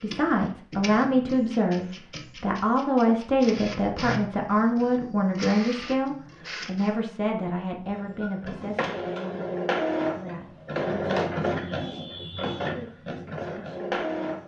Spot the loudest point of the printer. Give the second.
11 s.